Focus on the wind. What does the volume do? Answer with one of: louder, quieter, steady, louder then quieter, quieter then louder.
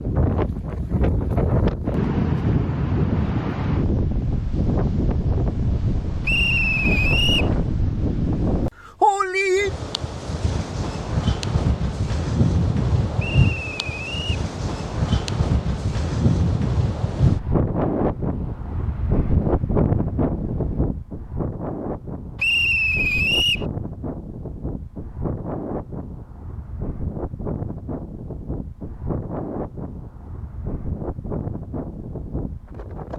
quieter.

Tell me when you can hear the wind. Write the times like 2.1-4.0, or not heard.
0.0-33.1.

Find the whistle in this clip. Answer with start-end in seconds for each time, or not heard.
6.2-7.5, 13.2-14.4, 22.4-23.6.